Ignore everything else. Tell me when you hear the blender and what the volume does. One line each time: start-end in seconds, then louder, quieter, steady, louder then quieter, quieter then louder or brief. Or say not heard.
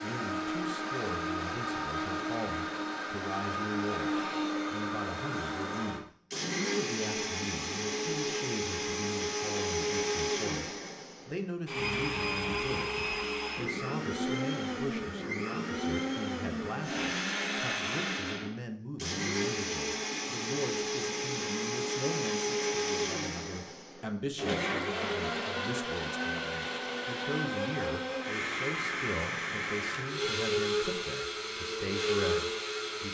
0.0-33.0 steady.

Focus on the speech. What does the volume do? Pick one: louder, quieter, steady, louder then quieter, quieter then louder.
steady.